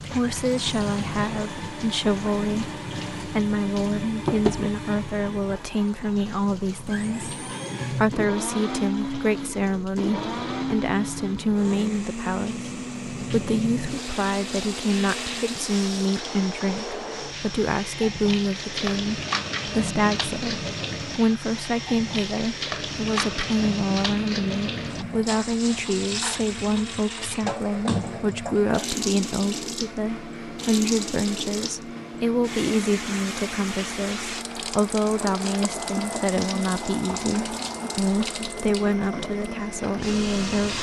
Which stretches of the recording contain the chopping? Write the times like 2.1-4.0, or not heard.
not heard.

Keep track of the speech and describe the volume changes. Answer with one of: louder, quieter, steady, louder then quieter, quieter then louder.
steady.